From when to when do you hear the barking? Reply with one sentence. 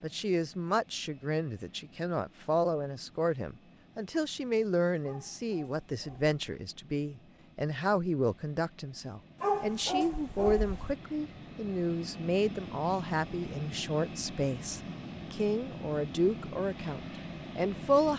The barking can be heard from 5.0 to 6.3 s and from 9.4 to 10.9 s.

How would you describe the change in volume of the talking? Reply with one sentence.
The volume of the talking stays about the same.